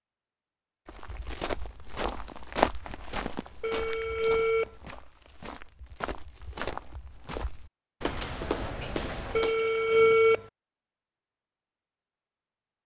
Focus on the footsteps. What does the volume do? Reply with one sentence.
The volume of the footsteps goes down, then up.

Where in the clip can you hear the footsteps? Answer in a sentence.
You can hear the footsteps from 0.8 to 9.6 s.